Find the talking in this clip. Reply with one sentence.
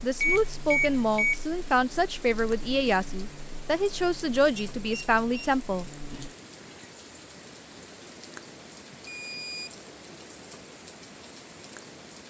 The talking can be heard from 0.0 to 5.8 s.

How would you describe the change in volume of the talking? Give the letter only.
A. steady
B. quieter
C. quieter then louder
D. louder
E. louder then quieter
A.